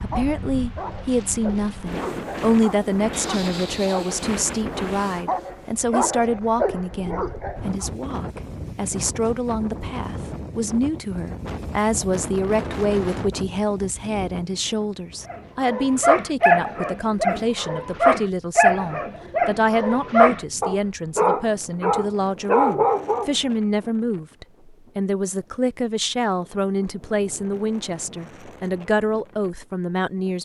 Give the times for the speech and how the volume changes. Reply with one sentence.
You can hear the speech from 0.0 to 30.4 s, at a steady volume.